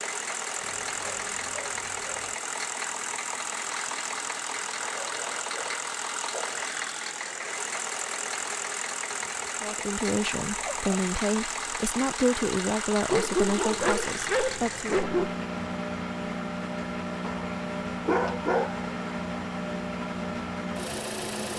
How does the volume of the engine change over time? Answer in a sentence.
The loudness of the engine stays about the same.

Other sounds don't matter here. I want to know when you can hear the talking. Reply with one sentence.
The talking can be heard from 9.6 to 14.9 s.